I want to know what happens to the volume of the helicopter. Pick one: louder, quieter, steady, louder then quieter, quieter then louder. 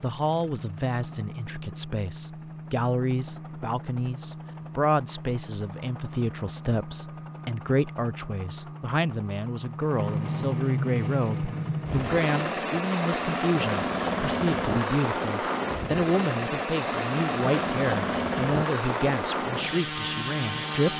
louder.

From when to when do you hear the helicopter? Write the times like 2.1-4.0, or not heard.
0.0-20.9.